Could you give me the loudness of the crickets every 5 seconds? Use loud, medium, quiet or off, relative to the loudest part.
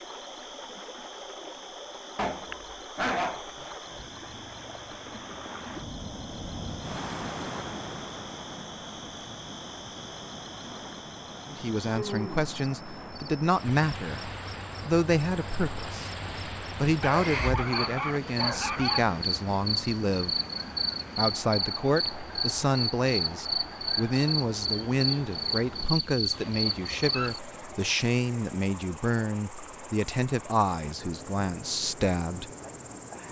quiet, quiet, medium, loud, loud, loud, quiet.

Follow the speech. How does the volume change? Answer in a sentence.
The volume of the speech stays about the same.